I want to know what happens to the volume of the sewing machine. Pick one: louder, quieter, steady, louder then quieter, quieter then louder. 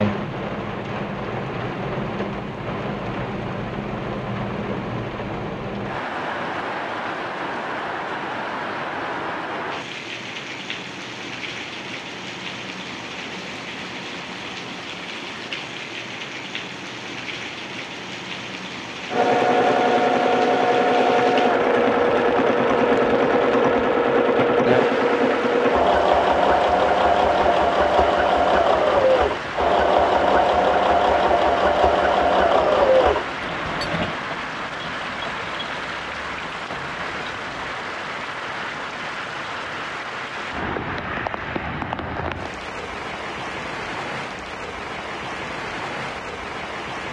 quieter.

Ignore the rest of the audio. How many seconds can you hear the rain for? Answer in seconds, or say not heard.
47 s.